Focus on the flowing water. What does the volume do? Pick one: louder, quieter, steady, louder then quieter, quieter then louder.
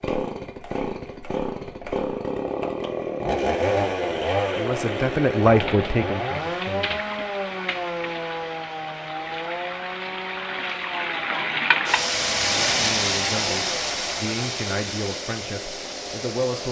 louder then quieter.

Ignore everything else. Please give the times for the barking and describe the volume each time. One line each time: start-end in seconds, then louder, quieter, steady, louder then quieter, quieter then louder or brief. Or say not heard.
not heard.